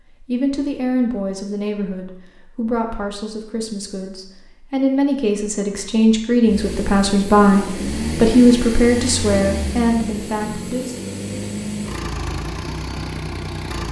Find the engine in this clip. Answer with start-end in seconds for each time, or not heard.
6.5-13.8.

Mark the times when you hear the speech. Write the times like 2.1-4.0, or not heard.
0.2-10.9.